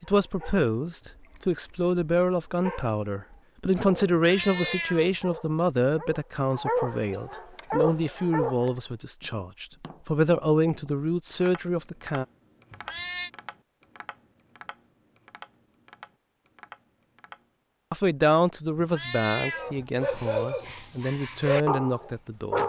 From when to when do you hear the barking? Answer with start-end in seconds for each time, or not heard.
0.1-8.8, 19.5-22.6.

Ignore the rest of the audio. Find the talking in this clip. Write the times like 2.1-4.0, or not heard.
0.0-12.2, 17.9-22.6.